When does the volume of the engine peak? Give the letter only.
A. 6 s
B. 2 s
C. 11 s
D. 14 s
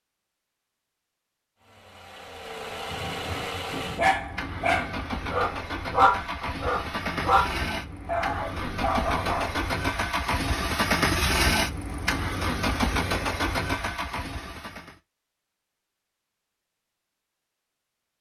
C.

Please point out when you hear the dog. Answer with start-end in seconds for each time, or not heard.
2.9-9.6.